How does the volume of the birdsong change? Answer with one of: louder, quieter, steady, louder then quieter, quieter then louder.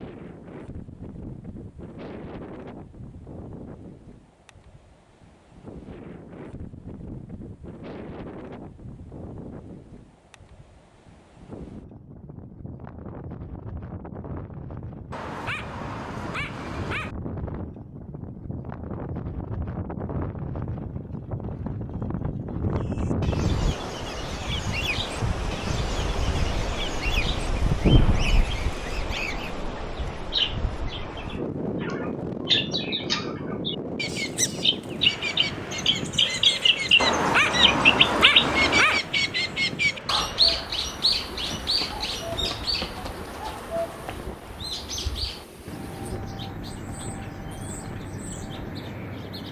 louder then quieter.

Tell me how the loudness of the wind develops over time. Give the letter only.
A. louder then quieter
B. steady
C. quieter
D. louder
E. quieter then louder
A.